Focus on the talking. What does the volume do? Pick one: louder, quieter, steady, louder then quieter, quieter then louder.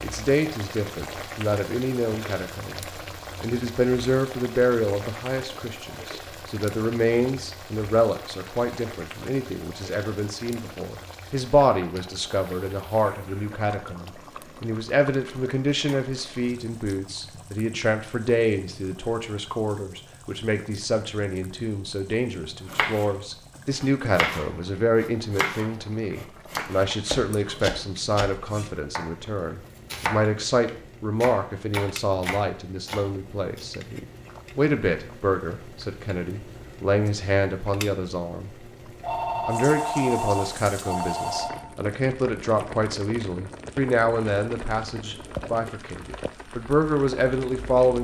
steady.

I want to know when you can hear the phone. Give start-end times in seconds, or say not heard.
39.0-41.6.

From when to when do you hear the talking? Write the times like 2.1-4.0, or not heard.
0.0-38.5, 39.5-48.0.